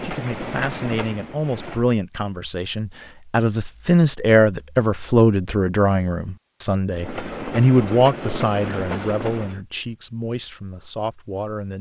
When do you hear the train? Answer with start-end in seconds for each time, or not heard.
0.0-1.9, 6.9-9.6.